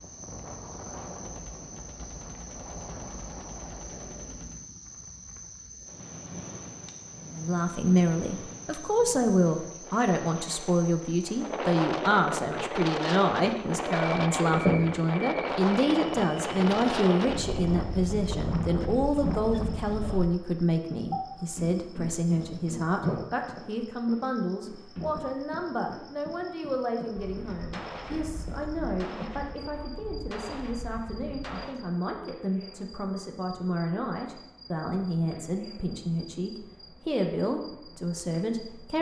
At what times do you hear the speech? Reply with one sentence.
The speech can be heard from 7.2 to 38.9 s.